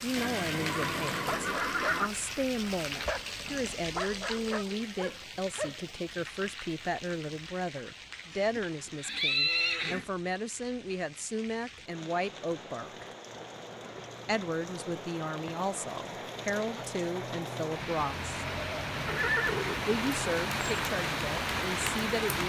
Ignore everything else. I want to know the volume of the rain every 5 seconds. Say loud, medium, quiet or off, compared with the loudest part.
medium, quiet, quiet, medium, loud.